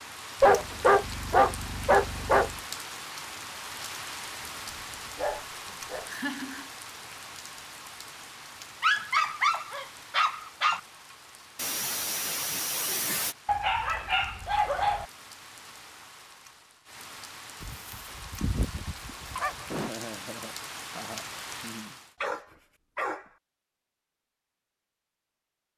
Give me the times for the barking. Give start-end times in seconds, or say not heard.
0.4-2.5, 4.5-6.1, 8.8-10.8, 13.4-15.1, 17.6-19.9, 22.2-23.2.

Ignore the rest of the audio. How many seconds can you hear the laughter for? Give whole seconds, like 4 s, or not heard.
5 s.